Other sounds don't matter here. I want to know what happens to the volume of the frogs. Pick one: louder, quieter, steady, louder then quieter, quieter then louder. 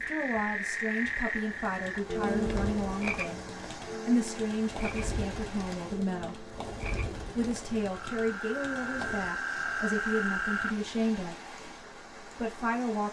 quieter then louder.